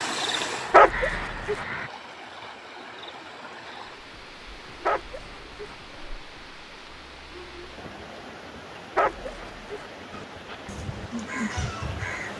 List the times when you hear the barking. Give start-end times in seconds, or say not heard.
0.7-1.6, 4.8-5.8, 8.9-9.8.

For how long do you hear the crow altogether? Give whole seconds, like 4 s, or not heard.
4 s.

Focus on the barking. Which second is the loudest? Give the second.
1 s.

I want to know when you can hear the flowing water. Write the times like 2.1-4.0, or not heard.
0.0-12.3.